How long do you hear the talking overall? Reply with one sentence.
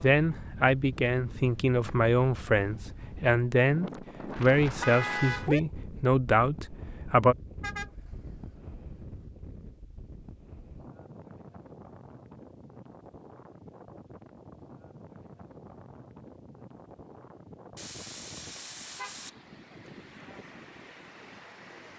The talking can be heard for 7 seconds in total.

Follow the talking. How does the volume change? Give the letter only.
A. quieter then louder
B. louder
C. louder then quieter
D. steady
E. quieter
D.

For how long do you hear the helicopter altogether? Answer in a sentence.
The helicopter can't be heard in this clip.